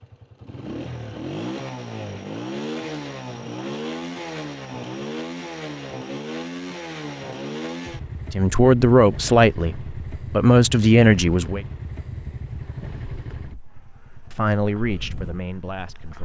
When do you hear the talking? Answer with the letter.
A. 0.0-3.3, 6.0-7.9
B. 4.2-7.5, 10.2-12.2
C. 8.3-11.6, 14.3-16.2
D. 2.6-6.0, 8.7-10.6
C.